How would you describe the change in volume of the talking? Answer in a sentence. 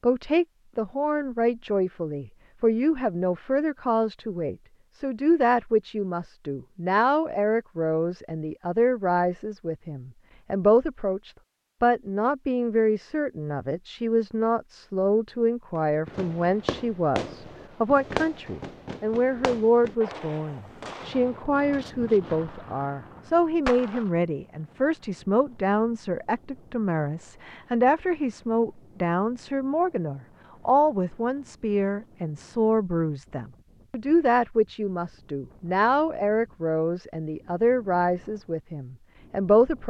The loudness of the talking stays about the same.